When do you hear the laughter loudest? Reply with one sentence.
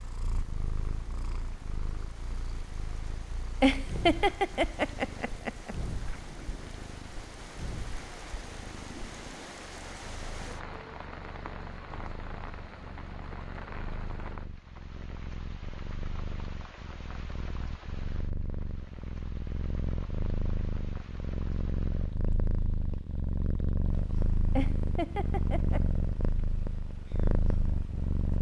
The volume of the laughter peaks at 4 seconds.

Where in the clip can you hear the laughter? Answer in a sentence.
The laughter can be heard from 3.6 to 5.8 s and from 24.6 to 25.8 s.